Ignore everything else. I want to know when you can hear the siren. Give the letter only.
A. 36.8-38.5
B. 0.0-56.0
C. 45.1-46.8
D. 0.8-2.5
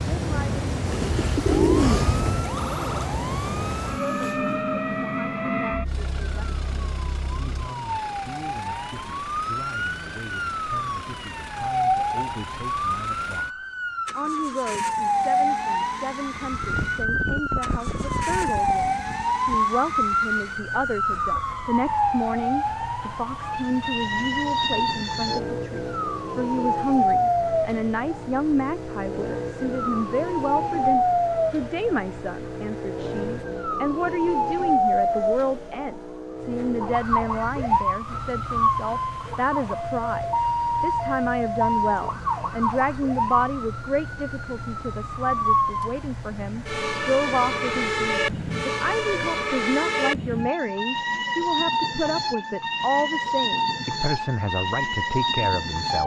B.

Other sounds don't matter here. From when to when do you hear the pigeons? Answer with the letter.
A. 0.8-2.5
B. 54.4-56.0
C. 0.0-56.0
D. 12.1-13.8
A.